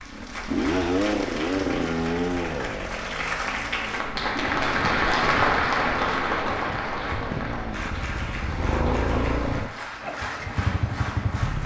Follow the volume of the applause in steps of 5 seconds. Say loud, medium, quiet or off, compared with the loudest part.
loud, loud, medium.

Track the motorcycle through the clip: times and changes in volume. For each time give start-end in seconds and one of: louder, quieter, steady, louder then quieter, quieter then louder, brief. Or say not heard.
0.0-11.6 quieter then louder.